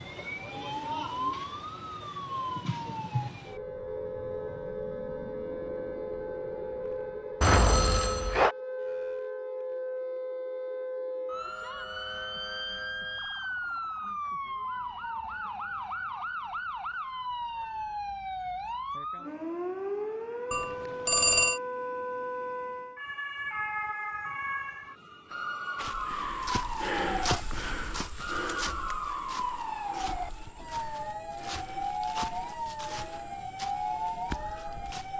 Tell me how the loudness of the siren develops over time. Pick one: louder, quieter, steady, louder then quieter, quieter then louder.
steady.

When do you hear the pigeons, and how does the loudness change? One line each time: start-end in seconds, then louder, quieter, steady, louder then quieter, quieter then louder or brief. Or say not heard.
not heard.